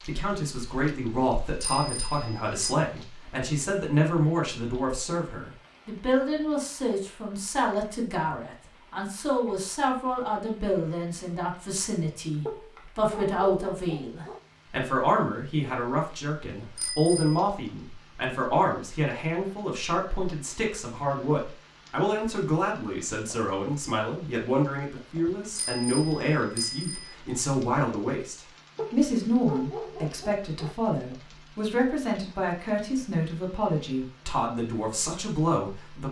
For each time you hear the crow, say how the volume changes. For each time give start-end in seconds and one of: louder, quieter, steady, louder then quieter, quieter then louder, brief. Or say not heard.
not heard.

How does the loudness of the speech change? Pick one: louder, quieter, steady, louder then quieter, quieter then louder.
steady.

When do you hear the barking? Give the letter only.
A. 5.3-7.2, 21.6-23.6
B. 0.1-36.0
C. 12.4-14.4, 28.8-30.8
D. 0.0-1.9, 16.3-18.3
C.